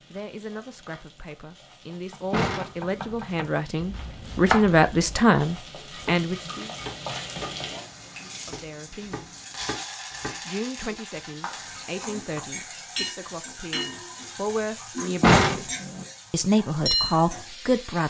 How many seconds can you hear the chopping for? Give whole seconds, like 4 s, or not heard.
10 s.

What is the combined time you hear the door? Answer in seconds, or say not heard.
2 s.